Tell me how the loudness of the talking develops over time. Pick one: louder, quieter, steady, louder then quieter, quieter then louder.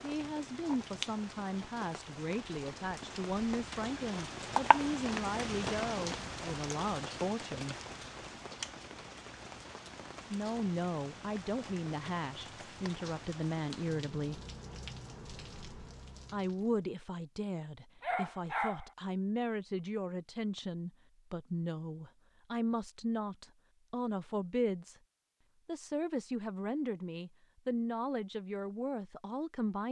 steady.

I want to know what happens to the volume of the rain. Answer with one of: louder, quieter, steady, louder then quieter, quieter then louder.
louder then quieter.